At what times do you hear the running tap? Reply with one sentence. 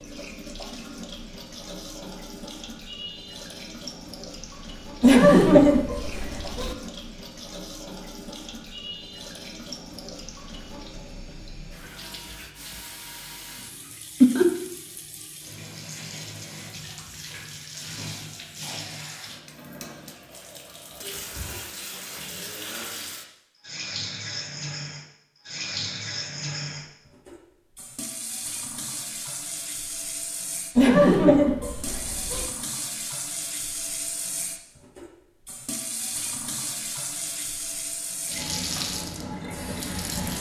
You can hear the running tap from 0.0 to 40.3 s.